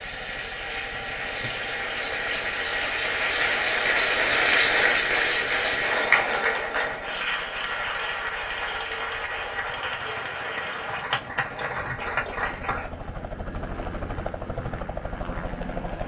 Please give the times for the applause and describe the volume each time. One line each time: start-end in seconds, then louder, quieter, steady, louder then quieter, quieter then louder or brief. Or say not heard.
0.0-12.9 louder then quieter.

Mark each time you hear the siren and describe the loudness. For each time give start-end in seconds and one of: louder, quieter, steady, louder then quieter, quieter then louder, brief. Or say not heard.
not heard.